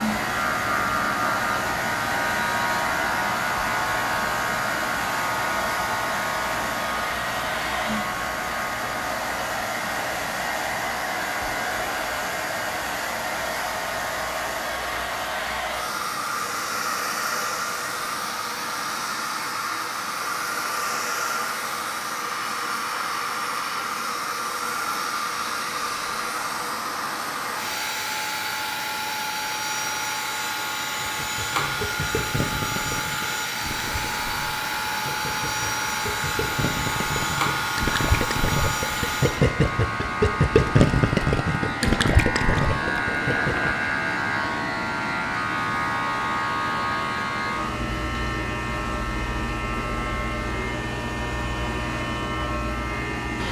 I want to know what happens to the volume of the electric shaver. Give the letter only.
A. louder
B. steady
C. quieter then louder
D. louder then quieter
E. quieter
C.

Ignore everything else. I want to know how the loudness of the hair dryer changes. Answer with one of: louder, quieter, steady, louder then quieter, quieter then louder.
quieter.